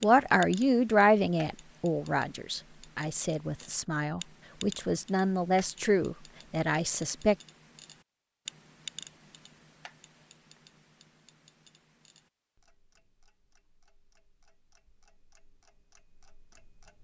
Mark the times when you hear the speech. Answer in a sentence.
The speech can be heard from 0.0 to 7.3 s.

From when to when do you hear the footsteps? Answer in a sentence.
The footsteps can't be heard in this clip.